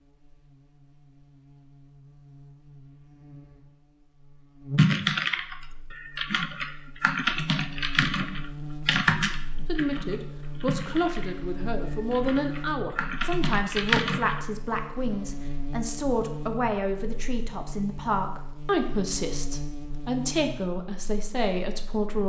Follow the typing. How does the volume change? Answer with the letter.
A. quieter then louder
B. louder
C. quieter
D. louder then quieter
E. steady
A.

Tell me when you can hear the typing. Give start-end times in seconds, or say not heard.
4.8-14.4.